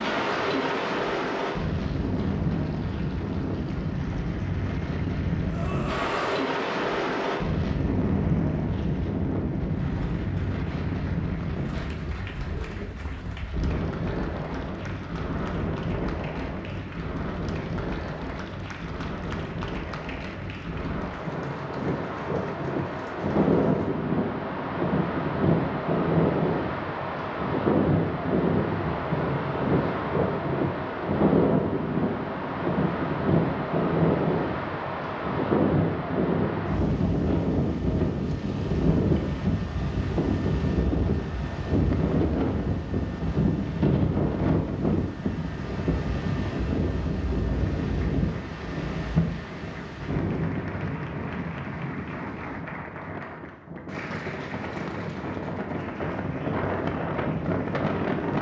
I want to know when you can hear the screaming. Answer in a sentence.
You can hear the screaming from 5.5 to 6.5 s.